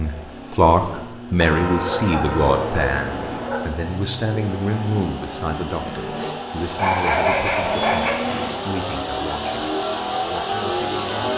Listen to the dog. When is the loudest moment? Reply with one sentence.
The loudest moment of the dog is at 7 seconds.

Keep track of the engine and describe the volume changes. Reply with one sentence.
The volume of the engine goes up.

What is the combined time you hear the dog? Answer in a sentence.
You can hear the dog for 4 seconds altogether.